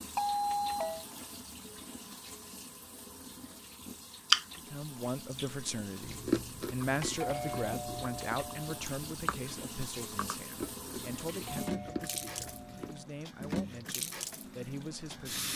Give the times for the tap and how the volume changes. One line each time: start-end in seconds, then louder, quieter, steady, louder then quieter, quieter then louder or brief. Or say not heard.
0.0-15.5 louder.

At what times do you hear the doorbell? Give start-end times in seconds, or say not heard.
0.1-1.1, 7.0-8.8, 11.3-13.1.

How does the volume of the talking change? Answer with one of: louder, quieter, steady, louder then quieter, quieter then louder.
quieter.